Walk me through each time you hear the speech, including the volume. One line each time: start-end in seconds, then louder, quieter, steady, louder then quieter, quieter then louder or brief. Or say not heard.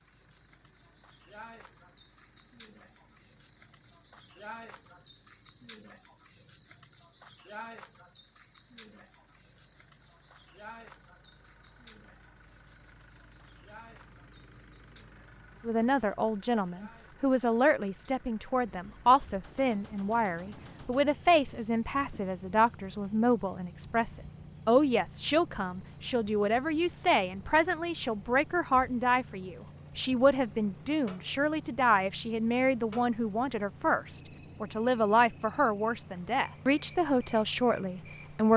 15.7-38.5 steady.